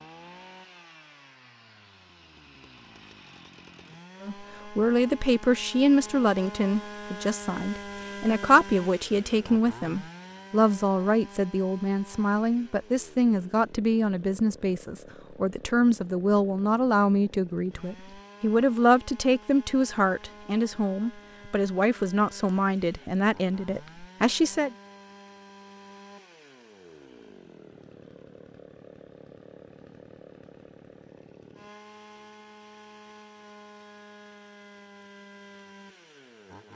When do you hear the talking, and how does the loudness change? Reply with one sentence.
You can hear the talking from 4.2 to 24.8 s, at a steady volume.